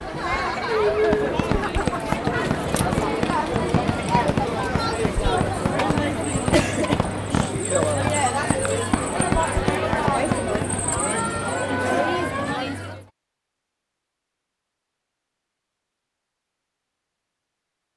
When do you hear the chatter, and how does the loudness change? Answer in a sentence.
The chatter can be heard from 0.0 to 13.1 s, at a steady volume.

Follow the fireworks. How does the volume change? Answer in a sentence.
The volume of the fireworks stays about the same.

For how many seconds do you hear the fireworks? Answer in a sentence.
The fireworks can be heard for 10 seconds in total.